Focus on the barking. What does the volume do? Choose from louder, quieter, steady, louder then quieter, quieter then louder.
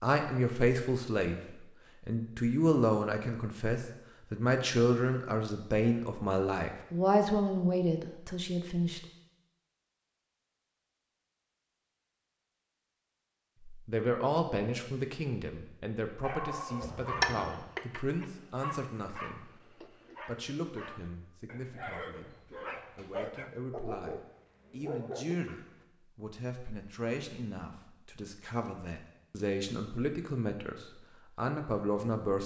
quieter then louder.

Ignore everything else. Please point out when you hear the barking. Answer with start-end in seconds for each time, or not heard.
16.2-25.7.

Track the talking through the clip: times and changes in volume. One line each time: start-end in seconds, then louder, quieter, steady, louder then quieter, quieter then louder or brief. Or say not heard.
0.0-1.4 brief
2.0-9.0 steady
13.7-32.4 quieter then louder.